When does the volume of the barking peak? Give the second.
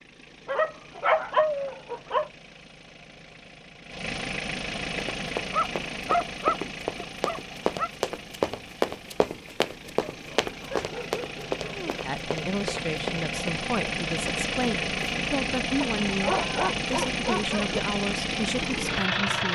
1 s.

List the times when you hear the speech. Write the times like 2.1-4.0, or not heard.
12.0-19.4.